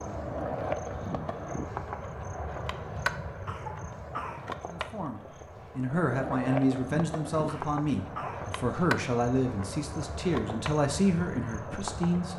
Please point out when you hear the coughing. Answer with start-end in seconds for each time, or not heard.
3.5-4.5, 7.5-8.5.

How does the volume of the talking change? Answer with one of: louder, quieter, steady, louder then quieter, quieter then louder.
steady.